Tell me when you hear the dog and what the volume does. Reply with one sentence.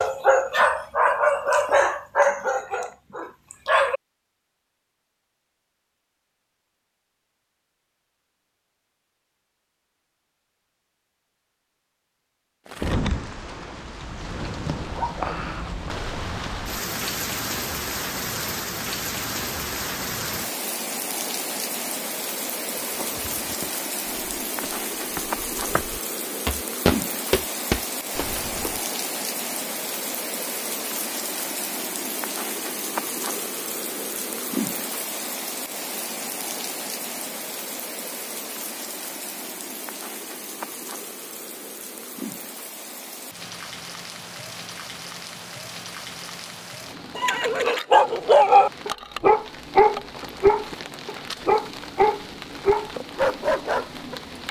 You can hear the dog from 0.0 to 4.0 s, getting quieter; and from 47.1 to 54.1 s, getting quieter.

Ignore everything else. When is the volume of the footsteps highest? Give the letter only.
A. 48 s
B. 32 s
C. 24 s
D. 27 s
D.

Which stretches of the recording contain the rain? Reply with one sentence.
You can hear the rain from 12.7 to 54.4 s.